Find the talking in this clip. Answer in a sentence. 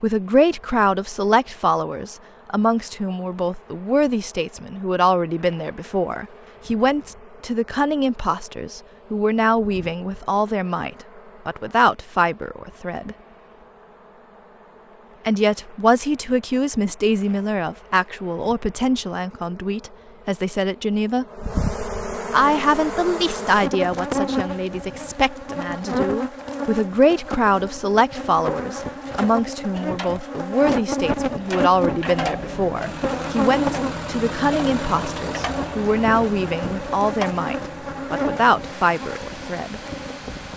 You can hear the talking from 0.0 to 13.2 s, from 15.2 to 21.2 s and from 22.3 to 39.8 s.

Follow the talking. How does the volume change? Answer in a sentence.
The volume of the talking stays about the same.